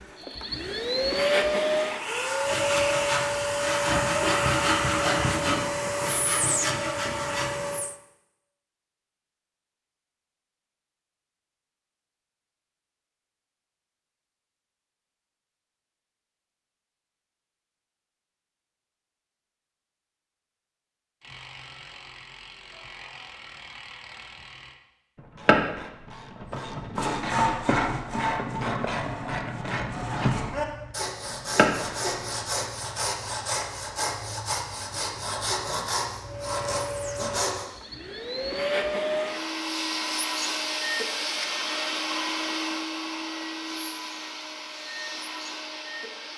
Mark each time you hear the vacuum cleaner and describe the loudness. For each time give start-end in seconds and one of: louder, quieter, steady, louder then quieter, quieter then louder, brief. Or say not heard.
0.0-8.0 quieter
36.2-46.3 louder then quieter.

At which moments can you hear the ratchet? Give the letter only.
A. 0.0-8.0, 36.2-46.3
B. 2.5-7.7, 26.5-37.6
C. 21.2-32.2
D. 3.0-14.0
C.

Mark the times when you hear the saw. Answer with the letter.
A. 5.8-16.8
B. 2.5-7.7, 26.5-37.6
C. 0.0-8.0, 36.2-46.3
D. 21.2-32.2
B.